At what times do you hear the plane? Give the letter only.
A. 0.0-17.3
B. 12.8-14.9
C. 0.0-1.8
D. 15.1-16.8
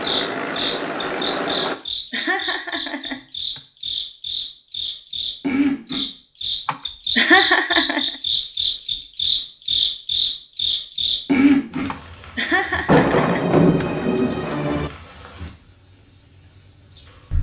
C.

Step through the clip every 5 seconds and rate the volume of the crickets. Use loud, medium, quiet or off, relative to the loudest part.
medium, loud, loud, loud.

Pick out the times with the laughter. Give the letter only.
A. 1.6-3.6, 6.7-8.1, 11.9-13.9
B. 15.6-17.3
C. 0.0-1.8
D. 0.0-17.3
A.